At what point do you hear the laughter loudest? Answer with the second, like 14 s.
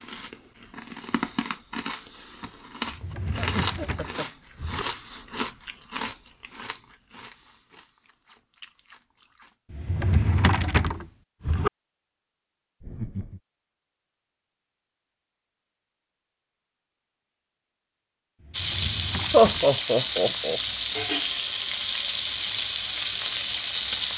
20 s.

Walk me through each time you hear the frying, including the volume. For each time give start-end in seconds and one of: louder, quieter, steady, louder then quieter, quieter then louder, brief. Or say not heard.
18.5-24.1 steady.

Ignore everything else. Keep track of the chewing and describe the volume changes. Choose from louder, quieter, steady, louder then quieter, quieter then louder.
quieter.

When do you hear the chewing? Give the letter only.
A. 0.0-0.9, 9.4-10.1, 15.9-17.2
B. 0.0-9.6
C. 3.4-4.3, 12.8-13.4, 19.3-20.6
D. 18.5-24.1
B.